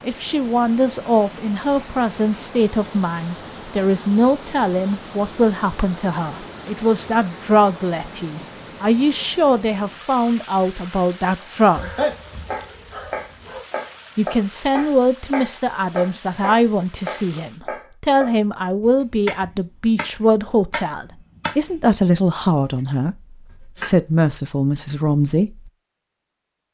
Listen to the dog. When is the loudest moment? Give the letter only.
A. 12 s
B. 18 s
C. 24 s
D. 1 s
A.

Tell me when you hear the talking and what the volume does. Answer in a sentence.
You can hear the talking from 0.0 to 11.9 s, at a steady volume; and from 14.2 to 25.7 s, at a steady volume.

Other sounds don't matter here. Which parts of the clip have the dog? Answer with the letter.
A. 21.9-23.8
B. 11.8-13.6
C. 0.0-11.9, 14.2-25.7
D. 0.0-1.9
B.